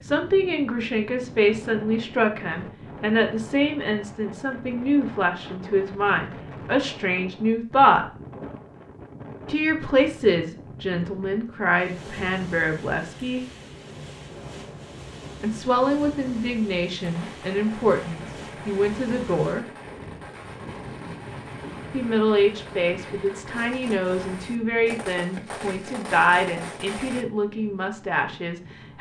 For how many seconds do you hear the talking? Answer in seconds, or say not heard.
23 s.